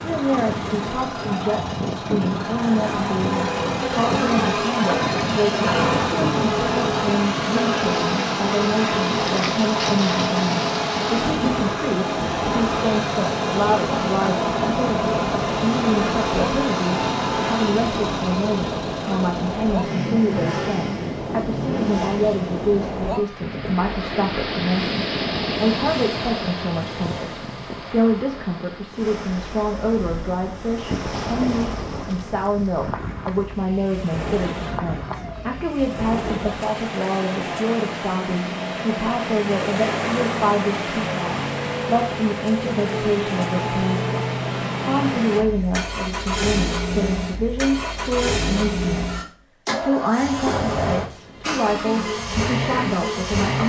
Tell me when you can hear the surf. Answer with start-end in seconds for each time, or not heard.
0.0-45.5.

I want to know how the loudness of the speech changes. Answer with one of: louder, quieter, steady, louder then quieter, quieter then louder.
steady.